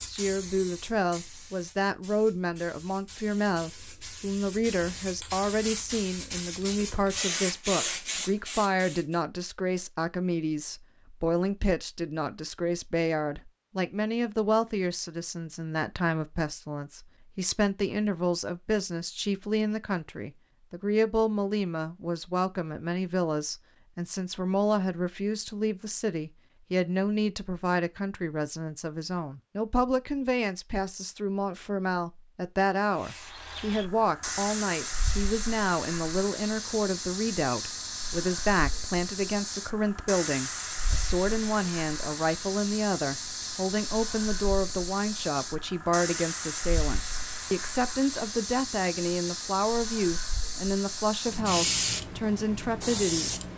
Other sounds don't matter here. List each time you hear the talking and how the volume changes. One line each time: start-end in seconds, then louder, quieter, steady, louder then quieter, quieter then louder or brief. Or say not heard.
0.0-53.3 steady.